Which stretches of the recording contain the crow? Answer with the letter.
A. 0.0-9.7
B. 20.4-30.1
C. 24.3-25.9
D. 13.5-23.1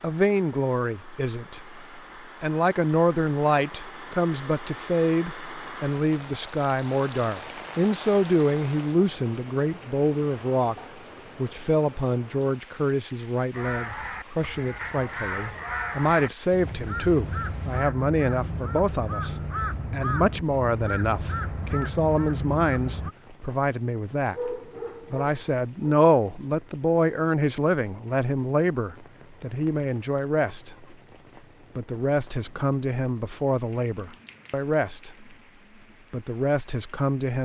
D.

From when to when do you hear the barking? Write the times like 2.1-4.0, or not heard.
24.3-25.9.